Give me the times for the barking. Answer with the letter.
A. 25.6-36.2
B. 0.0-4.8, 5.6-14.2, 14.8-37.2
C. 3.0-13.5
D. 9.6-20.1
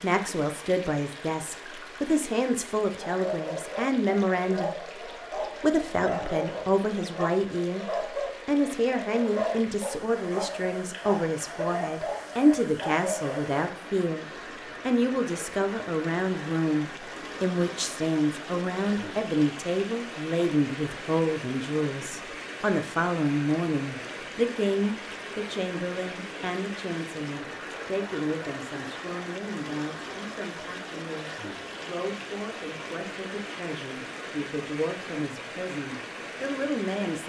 C.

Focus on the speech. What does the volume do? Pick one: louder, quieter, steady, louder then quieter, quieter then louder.
quieter.